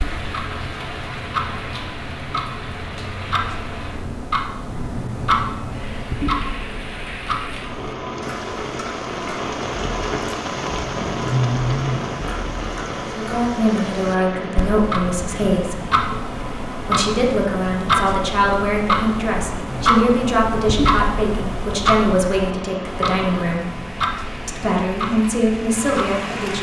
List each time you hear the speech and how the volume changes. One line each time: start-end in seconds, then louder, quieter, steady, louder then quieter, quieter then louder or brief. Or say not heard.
13.2-15.9 brief
16.9-23.7 steady
24.4-26.5 brief.